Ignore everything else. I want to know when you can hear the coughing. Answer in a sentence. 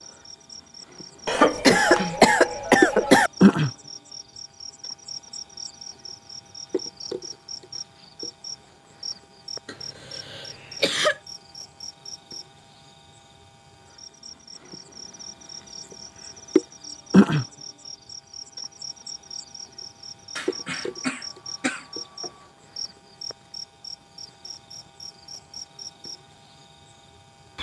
You can hear the coughing from 1.2 to 3.3 s, from 9.7 to 11.2 s and from 20.4 to 22.3 s.